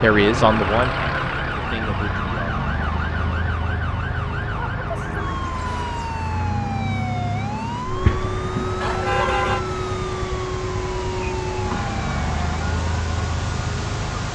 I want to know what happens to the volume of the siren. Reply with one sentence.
The loudness of the siren stays about the same.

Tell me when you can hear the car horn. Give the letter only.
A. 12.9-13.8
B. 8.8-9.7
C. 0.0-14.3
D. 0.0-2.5
B.